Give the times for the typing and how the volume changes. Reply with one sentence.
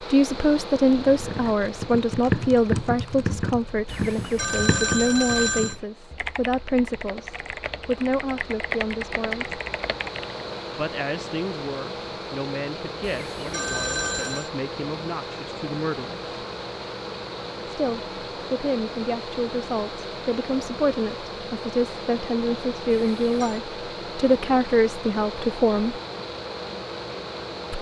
You can hear the typing from 0.9 to 10.4 s, getting quieter then louder.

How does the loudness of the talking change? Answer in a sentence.
The volume of the talking goes down, then up.